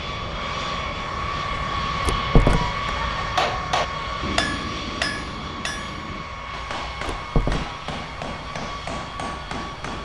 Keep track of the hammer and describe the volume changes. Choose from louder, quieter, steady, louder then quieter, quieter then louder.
quieter.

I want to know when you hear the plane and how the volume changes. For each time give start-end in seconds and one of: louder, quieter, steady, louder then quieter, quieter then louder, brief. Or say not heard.
0.0-10.0 quieter.